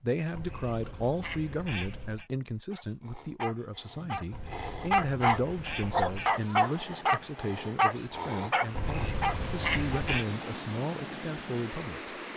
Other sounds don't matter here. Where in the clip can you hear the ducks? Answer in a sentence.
You can hear the ducks from 0.3 to 2.3 s, from 4.3 to 6.4 s and from 8.8 to 10.2 s.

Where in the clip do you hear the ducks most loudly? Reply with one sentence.
The loudest moment of the ducks is at 10 seconds.